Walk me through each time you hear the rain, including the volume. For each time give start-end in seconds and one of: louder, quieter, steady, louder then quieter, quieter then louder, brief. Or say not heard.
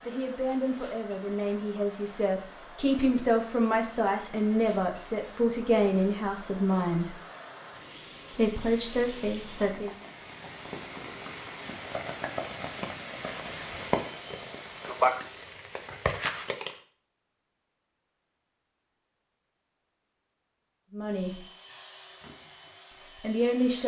0.0-16.8 louder.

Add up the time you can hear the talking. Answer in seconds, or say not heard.
10 s.